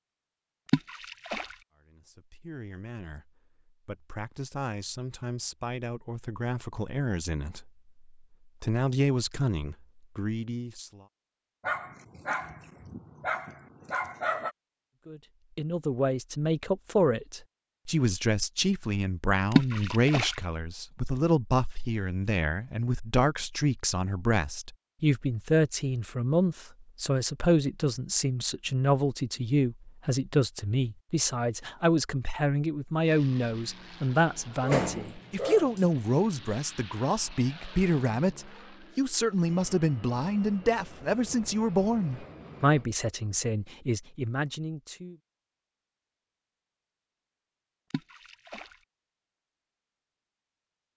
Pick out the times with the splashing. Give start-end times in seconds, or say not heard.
0.7-1.6, 19.5-20.4, 47.9-48.8.